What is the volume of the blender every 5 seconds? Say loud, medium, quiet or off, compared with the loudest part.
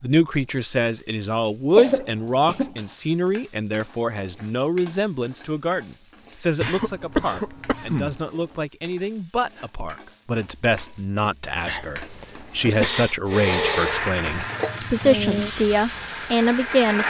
off, off, loud, loud.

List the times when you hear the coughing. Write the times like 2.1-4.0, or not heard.
1.8-2.8, 6.6-8.2, 11.7-12.9.